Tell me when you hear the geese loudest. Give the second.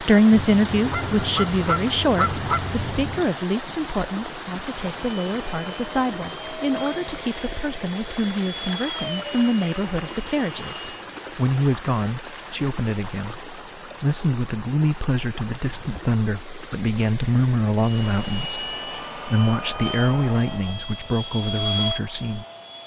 2 s.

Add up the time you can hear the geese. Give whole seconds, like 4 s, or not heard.
3 s.